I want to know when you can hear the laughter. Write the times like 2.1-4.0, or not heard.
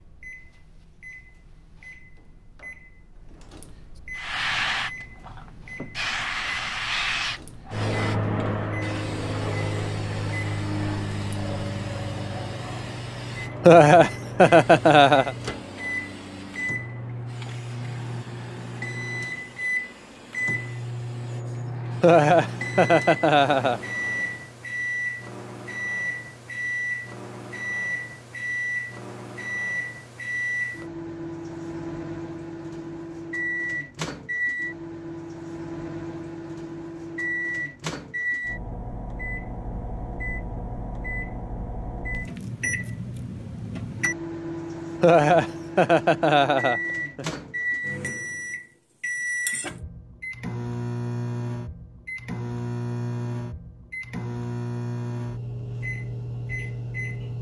13.7-15.3, 22.0-23.8, 45.0-47.4.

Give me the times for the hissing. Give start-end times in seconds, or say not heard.
4.2-24.5.